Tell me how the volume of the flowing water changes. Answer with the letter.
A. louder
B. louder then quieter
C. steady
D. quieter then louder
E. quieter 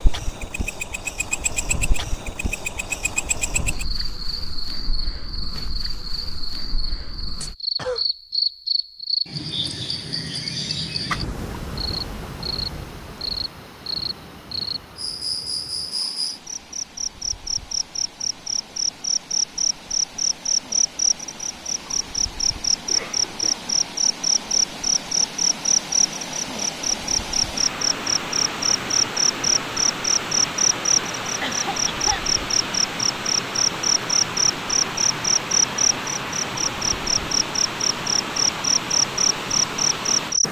A.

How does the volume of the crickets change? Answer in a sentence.
The volume of the crickets goes up.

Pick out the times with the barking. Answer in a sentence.
The barking can't be heard in this clip.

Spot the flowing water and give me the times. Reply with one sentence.
You can hear the flowing water from 11.3 to 40.4 s.